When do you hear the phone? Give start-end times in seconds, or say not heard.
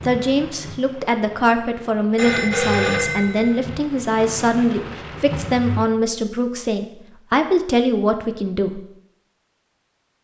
2.1-3.6.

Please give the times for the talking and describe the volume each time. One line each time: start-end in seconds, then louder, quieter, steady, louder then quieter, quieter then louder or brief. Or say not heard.
0.0-8.8 steady.